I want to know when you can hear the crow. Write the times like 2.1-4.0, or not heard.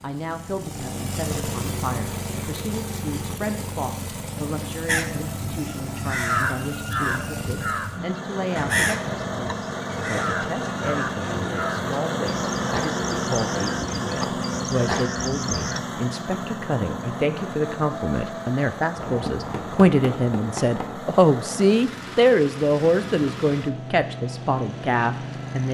4.8-15.8.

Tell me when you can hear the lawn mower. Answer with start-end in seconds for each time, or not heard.
0.0-25.6.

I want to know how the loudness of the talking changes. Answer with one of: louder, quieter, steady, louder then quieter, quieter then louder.
louder.